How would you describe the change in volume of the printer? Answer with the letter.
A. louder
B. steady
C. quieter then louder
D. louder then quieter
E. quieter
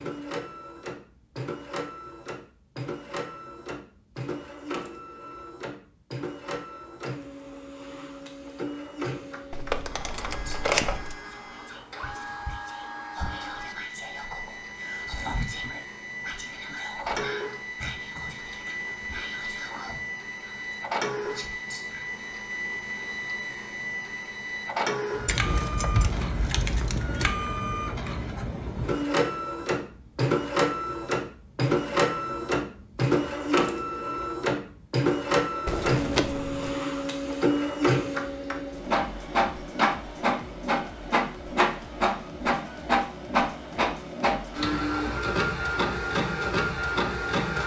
A.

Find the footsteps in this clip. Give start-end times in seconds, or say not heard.
not heard.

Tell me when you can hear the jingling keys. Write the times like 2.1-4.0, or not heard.
9.5-11.2, 25.2-27.3, 35.6-36.8.